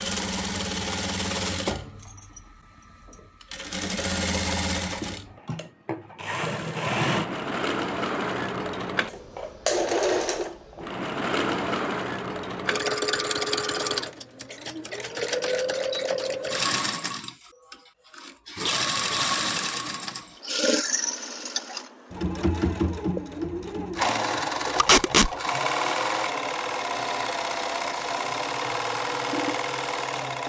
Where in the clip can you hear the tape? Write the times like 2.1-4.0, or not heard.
24.8-25.3.